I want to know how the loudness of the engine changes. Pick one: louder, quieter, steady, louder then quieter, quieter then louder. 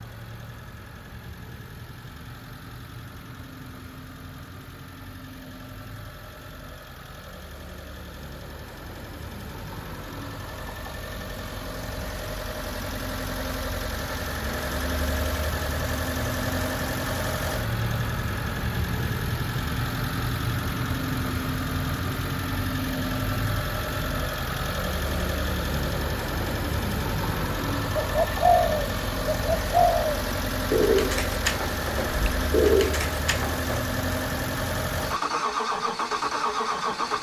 louder.